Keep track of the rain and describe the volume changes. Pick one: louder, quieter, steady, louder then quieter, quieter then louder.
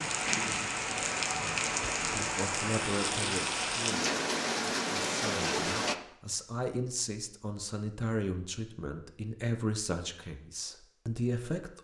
steady.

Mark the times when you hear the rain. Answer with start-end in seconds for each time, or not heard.
0.0-6.0.